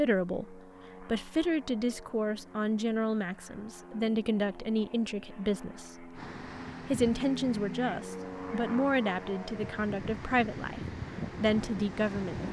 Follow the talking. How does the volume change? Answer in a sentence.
The loudness of the talking stays about the same.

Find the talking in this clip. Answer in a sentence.
You can hear the talking from 0.0 to 6.1 s and from 6.8 to 12.4 s.